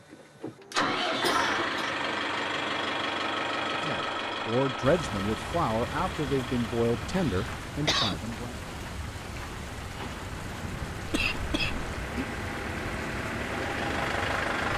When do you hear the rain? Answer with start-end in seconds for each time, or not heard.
4.8-14.7.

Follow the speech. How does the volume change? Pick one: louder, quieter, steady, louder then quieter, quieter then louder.
quieter.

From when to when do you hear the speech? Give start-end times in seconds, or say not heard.
3.8-8.6.